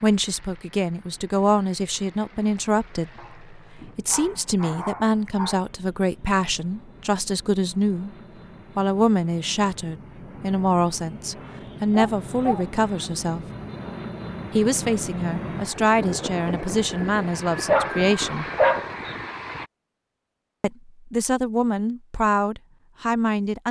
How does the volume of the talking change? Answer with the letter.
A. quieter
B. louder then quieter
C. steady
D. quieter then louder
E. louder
C.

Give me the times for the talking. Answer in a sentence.
You can hear the talking from 0.0 to 8.1 s, from 8.8 to 13.4 s, from 14.5 to 18.4 s and from 20.6 to 23.6 s.